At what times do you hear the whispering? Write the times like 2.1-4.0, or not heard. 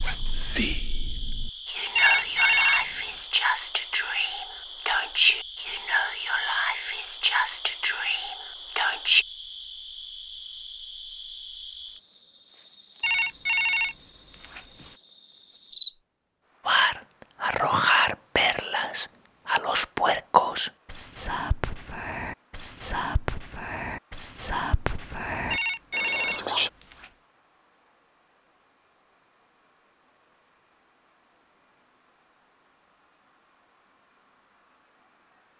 0.0-9.2, 16.6-26.7.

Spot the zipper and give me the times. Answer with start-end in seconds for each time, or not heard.
0.0-0.7.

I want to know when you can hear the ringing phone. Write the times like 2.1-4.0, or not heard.
1.9-2.9, 13.0-14.9, 25.5-27.1.